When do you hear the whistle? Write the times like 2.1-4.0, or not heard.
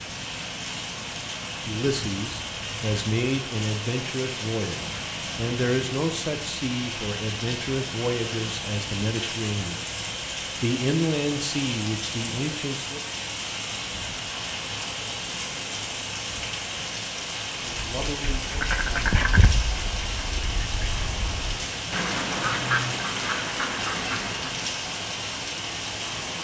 not heard.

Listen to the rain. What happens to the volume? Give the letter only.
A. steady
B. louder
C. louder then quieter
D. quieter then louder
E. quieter
A.